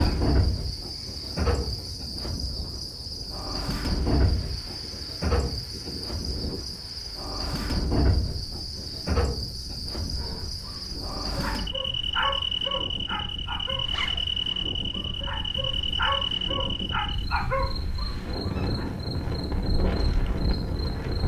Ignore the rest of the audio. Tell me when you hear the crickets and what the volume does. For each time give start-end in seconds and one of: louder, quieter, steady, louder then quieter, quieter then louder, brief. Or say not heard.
0.0-21.2 quieter.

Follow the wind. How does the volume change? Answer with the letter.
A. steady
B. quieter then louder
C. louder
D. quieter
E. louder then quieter
C.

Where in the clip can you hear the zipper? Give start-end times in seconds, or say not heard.
13.8-14.2.